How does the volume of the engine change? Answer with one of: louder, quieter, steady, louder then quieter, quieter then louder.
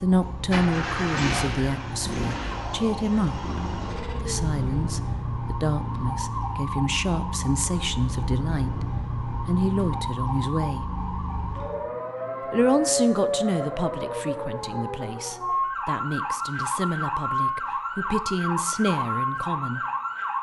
quieter.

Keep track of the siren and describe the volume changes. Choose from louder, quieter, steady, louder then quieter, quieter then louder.
louder.